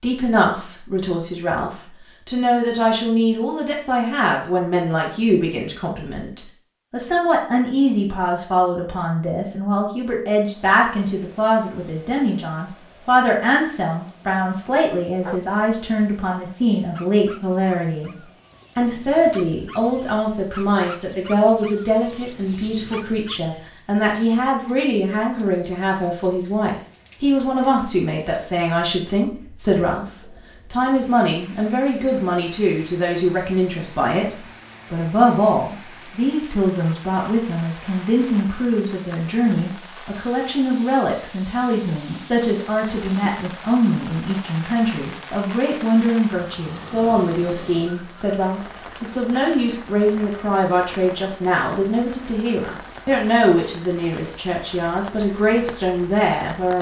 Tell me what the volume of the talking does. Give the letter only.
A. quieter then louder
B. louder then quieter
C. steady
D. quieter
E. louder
C.